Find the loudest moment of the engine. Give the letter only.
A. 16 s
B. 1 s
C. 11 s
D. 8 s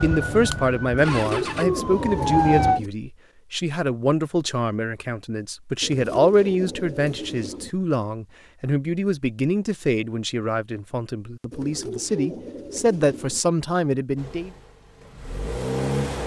A.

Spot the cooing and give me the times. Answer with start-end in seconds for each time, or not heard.
0.9-2.9, 5.8-7.7, 11.5-13.4.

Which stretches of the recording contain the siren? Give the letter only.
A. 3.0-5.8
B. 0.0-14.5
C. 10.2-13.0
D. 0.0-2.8
D.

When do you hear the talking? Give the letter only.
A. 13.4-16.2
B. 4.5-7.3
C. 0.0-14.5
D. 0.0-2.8
C.